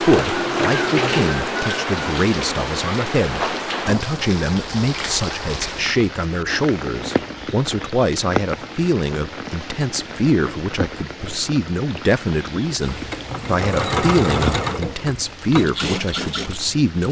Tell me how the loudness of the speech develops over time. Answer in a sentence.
The loudness of the speech stays about the same.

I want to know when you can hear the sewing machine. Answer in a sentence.
The sewing machine can be heard from 0.0 to 1.7 s and from 12.8 to 16.9 s.